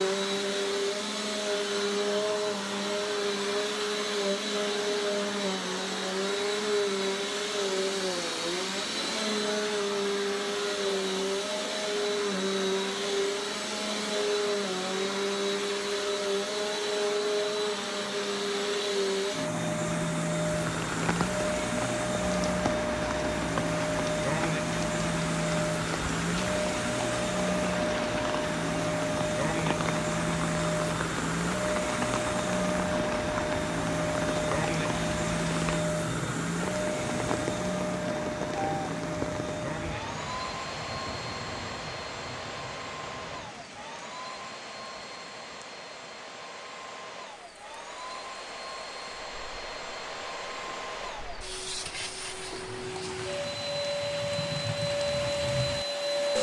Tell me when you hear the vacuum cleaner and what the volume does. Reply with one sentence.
The vacuum cleaner can be heard from 0.0 to 56.3 s, getting quieter.